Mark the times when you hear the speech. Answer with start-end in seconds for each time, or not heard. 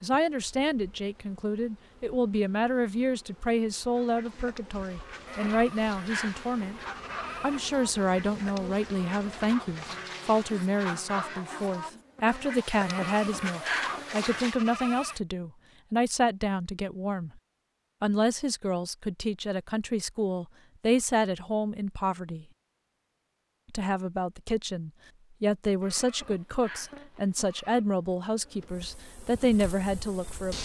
0.0-6.8, 7.4-17.3, 18.0-22.4, 23.7-30.6.